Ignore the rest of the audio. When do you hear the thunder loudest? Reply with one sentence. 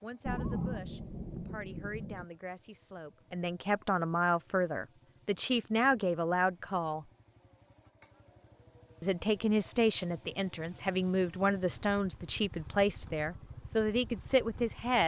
The volume of the thunder peaks at 1 second.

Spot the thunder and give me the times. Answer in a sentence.
You can hear the thunder from 0.2 to 2.2 s.